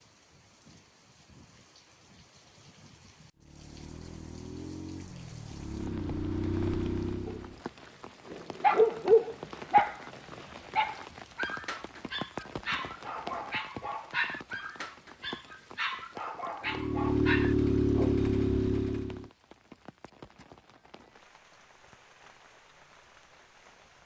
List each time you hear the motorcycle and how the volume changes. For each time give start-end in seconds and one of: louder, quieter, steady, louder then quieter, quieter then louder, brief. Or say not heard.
3.4-7.6 louder
16.6-19.3 brief.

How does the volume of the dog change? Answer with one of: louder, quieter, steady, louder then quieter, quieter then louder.
quieter.